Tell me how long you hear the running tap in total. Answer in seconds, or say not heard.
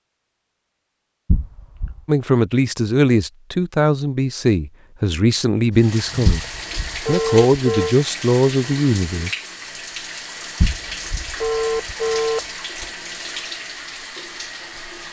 9 s.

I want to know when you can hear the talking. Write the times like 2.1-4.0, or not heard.
2.0-6.5, 7.0-9.3.